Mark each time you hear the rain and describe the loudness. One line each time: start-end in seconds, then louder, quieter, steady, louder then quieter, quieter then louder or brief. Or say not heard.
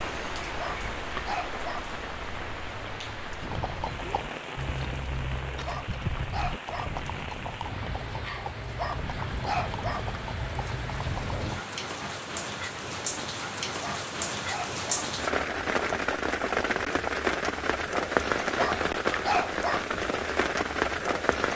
0.0-21.5 louder.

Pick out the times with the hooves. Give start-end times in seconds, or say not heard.
3.4-11.5.